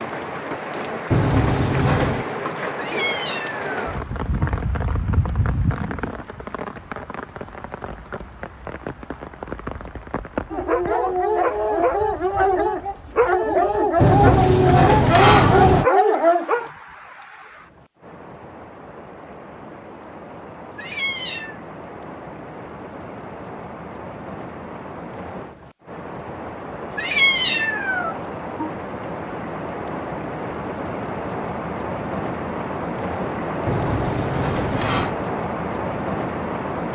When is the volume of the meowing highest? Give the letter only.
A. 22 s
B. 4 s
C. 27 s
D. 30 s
C.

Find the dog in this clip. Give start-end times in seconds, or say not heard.
10.5-16.7.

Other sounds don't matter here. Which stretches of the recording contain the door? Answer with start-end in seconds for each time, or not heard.
1.1-2.3, 14.0-15.8, 33.6-35.1.